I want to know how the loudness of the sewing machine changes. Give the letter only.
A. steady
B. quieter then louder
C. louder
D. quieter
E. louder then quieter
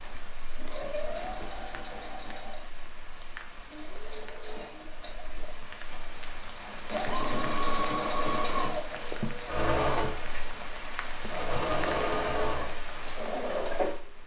B.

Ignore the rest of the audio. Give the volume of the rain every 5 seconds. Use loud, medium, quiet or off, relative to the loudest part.
medium, loud, loud.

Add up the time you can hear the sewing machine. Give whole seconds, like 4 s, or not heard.
14 s.